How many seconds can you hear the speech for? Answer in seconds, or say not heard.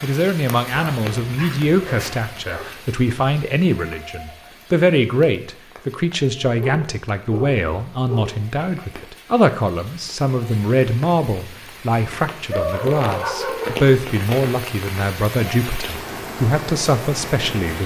18 s.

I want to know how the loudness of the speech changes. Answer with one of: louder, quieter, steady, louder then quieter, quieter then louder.
steady.